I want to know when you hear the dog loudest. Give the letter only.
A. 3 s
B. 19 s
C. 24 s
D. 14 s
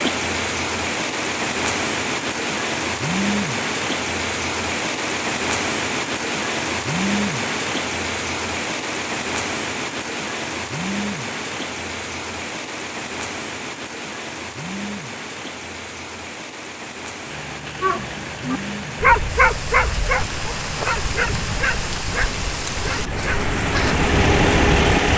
B.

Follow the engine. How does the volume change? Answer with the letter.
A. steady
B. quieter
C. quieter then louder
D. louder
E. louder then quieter
D.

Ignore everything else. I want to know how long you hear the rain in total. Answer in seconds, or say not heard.
25 s.